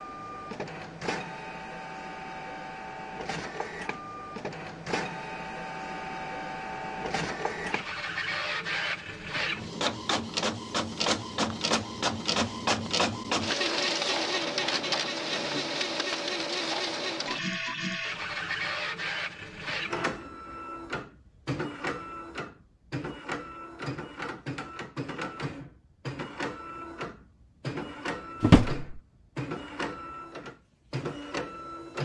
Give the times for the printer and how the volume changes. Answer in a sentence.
The printer can be heard from 0.0 to 31.9 s, getting louder then quieter.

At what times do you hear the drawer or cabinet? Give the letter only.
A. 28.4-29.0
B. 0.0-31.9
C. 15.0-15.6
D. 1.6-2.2
A.